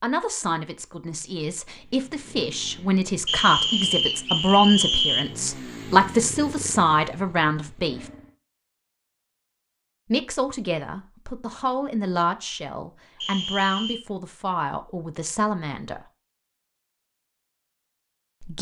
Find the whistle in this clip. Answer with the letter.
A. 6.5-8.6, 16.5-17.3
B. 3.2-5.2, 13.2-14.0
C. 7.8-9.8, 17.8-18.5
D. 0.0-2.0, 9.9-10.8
B.